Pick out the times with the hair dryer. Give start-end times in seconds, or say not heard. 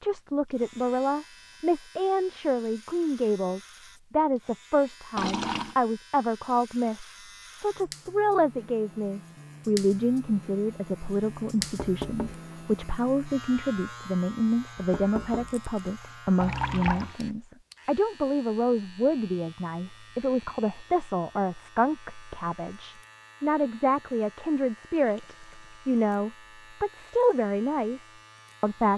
not heard.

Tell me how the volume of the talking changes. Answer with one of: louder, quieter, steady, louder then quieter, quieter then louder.
steady.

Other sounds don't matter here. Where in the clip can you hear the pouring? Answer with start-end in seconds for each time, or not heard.
5.2-5.8, 16.4-17.1, 24.9-25.9.